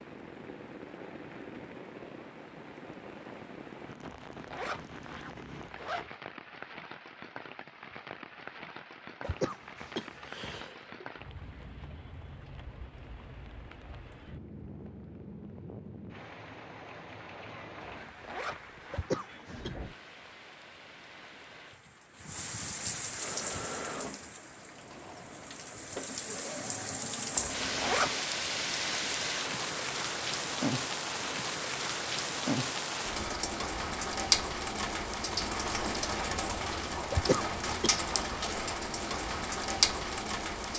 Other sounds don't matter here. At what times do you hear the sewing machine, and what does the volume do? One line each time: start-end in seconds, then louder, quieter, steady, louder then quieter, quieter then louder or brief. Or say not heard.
23.1-28.2 quieter then louder.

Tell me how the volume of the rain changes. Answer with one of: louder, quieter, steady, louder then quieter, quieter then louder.
louder.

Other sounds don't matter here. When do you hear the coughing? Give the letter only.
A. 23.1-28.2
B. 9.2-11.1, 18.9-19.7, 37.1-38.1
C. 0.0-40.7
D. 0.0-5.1
B.